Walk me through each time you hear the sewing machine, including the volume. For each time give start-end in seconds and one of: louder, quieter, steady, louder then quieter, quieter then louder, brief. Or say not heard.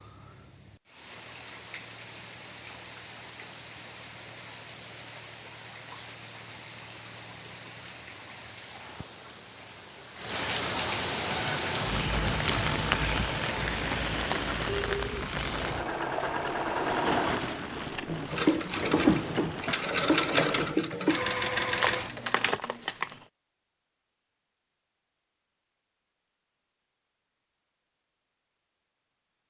11.2-22.6 louder.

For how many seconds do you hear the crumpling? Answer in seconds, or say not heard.
2 s.